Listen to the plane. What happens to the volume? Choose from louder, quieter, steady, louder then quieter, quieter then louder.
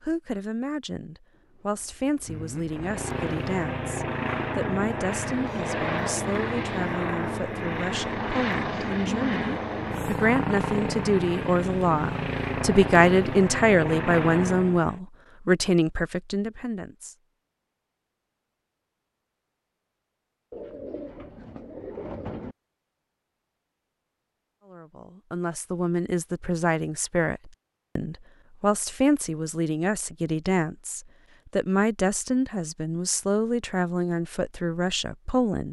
steady.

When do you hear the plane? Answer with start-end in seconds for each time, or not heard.
2.6-15.0.